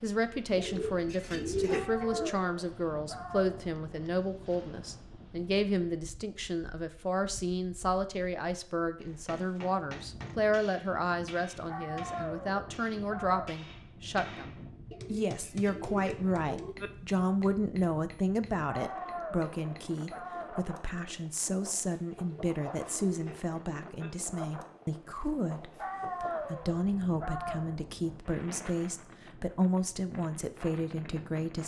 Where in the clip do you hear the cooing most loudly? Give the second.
2 s.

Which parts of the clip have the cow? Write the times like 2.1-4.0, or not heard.
not heard.